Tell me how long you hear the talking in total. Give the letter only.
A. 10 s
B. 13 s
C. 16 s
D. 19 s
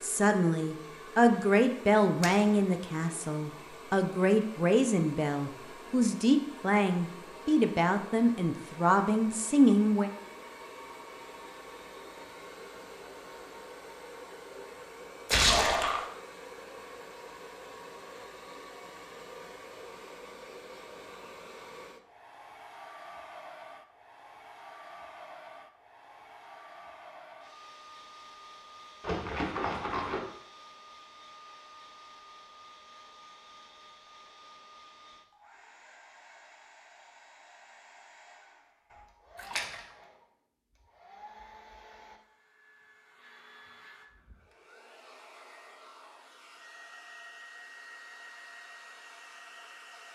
A.